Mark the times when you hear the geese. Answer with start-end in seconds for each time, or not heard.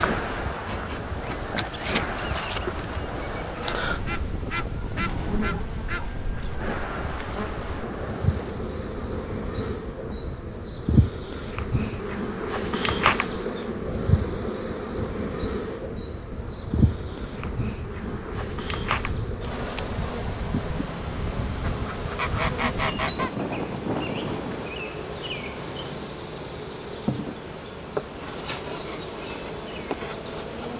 3.6-6.5, 21.6-23.3.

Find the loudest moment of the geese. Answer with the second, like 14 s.
23 s.